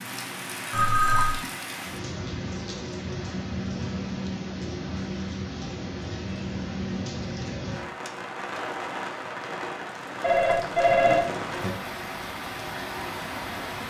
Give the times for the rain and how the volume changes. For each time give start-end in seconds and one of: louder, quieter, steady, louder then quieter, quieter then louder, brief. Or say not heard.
0.0-13.8 steady.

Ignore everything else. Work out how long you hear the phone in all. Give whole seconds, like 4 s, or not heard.
2 s.